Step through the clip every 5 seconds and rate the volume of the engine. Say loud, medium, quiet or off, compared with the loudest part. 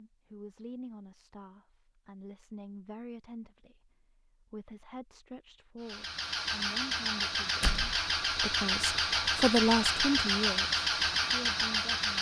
off, loud, loud.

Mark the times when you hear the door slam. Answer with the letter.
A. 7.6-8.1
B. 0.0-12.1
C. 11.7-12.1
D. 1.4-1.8
A.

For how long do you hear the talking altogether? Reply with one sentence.
You can hear the talking for 12 seconds altogether.